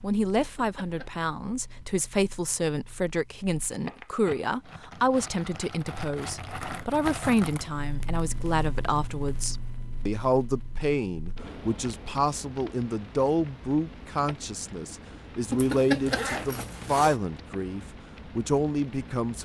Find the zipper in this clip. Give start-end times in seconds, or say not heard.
0.3-1.1, 15.4-17.2.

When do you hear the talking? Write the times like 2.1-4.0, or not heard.
0.0-19.3.